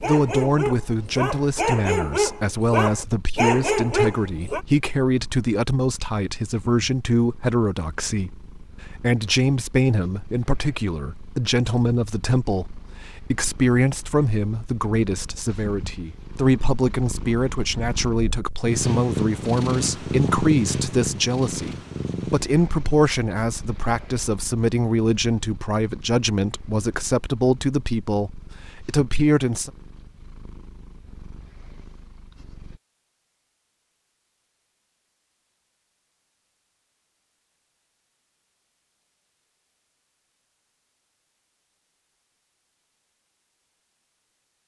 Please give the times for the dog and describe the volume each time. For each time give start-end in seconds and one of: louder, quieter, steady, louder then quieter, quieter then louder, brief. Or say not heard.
0.0-4.7 louder.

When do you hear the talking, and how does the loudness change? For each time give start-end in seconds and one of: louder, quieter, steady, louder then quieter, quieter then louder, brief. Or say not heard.
0.0-29.7 steady.